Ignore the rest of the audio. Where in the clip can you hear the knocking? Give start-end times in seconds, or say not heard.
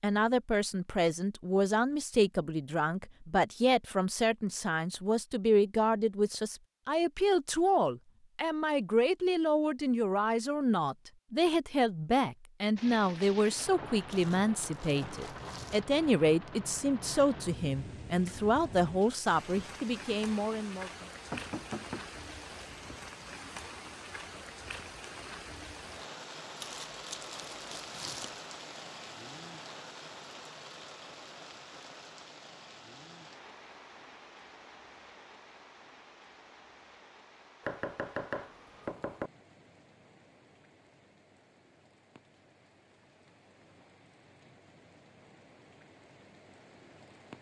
21.3-22.1, 37.6-39.3.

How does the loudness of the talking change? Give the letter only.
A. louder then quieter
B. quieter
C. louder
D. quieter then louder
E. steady
E.